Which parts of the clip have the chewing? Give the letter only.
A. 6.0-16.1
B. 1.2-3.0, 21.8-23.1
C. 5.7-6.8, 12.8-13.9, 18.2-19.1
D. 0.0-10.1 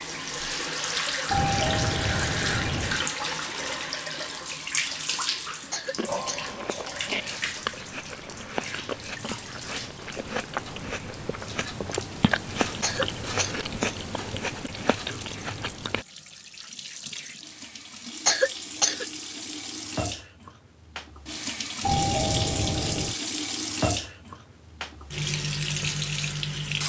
A.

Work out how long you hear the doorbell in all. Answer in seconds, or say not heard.
3 s.